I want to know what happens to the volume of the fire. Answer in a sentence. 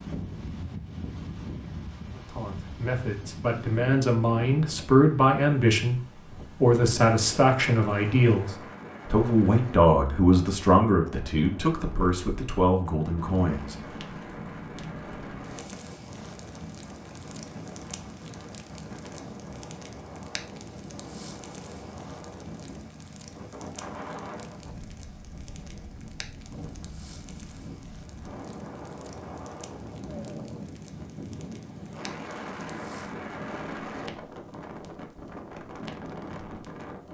The volume of the fire goes down.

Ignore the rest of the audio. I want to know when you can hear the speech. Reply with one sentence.
You can hear the speech from 2.1 to 13.8 s.